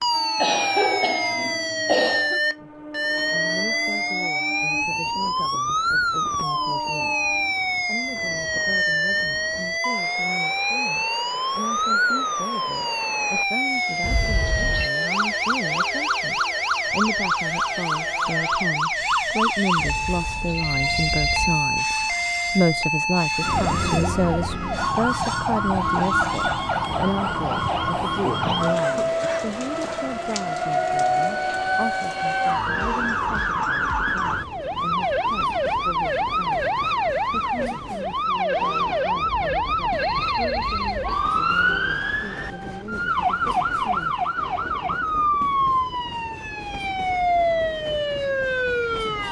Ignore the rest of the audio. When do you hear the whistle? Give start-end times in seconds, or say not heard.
not heard.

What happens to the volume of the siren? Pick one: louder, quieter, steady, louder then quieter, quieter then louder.
steady.